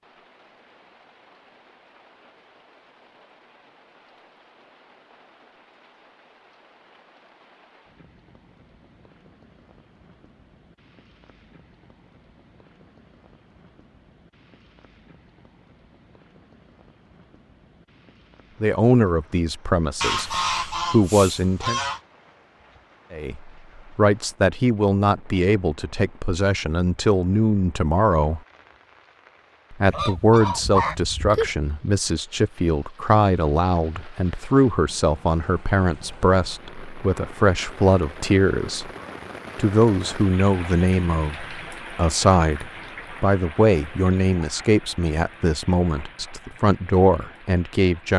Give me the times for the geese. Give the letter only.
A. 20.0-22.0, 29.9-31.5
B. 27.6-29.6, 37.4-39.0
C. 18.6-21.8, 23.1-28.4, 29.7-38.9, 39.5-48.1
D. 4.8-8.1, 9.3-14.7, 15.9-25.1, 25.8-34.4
A.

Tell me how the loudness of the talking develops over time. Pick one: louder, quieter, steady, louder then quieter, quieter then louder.
steady.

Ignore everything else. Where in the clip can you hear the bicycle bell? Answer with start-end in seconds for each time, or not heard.
not heard.